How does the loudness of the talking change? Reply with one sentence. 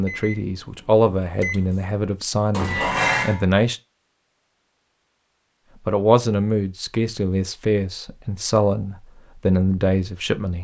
The volume of the talking stays about the same.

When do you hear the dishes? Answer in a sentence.
You can hear the dishes from 2.5 to 3.4 s.